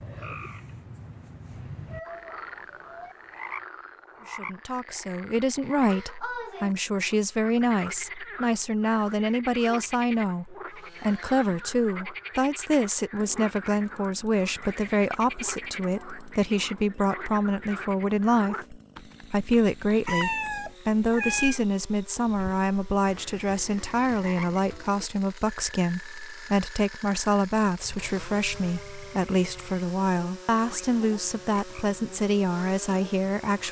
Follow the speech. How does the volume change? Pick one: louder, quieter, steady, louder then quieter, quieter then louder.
steady.